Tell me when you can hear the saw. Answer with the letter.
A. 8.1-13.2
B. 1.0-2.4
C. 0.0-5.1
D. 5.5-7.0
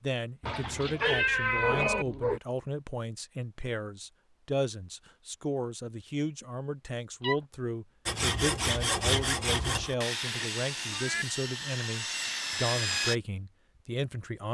A.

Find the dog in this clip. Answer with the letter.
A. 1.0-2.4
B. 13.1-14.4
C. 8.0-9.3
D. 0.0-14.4
A.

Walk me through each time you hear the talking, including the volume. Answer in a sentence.
The talking can be heard from 0.0 to 14.4 s, at a steady volume.